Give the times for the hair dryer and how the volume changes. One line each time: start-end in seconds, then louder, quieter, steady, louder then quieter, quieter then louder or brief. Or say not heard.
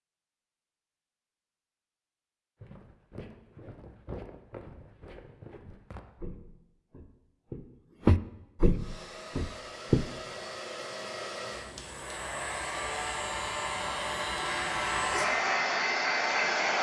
8.7-16.7 louder.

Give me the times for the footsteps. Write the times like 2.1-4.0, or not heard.
2.6-10.1.